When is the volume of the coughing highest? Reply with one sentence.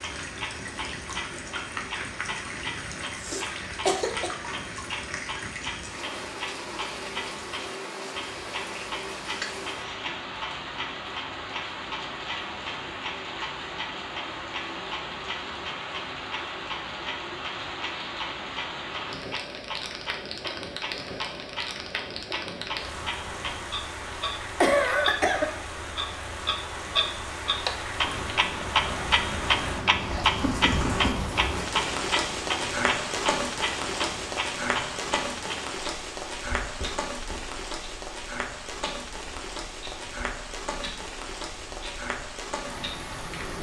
The loudest moment of the coughing is at 25 seconds.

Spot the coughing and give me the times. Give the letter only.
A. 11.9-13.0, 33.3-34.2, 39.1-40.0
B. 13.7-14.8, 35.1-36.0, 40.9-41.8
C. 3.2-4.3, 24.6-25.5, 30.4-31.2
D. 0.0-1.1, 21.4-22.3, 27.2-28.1
C.